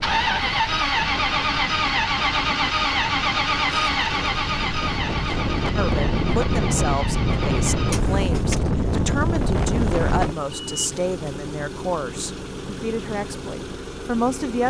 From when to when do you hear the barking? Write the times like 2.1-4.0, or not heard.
not heard.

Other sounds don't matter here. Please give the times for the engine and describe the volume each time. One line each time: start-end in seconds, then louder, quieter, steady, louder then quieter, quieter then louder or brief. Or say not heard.
0.0-14.6 quieter.